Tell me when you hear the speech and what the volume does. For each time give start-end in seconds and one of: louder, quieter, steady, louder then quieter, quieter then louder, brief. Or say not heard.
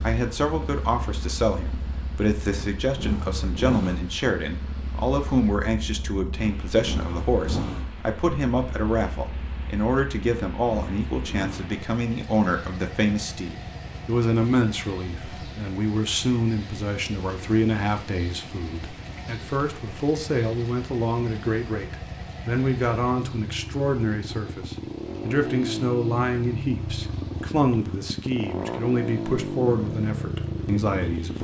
0.0-31.3 steady.